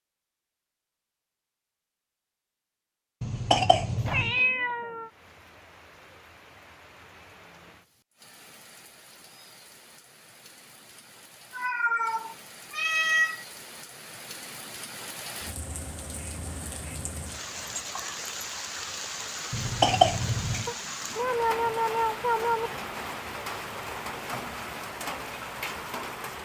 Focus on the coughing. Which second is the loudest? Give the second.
20 s.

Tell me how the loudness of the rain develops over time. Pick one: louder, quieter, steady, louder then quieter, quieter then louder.
louder.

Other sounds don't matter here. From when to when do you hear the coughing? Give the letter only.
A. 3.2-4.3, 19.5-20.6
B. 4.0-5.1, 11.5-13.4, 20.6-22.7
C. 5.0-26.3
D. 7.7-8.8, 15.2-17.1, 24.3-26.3
A.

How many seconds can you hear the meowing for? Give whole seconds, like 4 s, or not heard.
5 s.